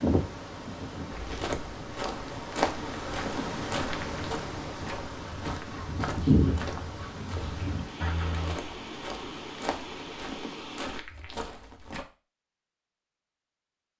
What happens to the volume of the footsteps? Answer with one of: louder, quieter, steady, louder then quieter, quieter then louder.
quieter.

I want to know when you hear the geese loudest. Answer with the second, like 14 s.
6 s.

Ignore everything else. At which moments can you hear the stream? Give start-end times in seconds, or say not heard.
0.0-11.1.